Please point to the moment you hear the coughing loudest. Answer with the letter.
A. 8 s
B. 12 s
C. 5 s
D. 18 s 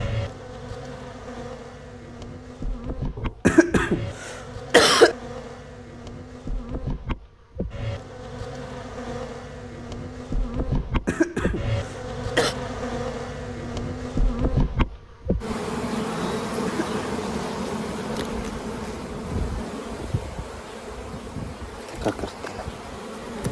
C.